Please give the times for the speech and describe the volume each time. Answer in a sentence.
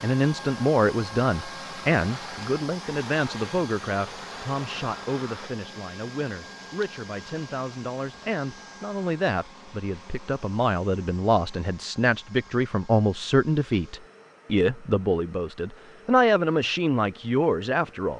The speech can be heard from 0.0 to 18.1 s, getting quieter then louder.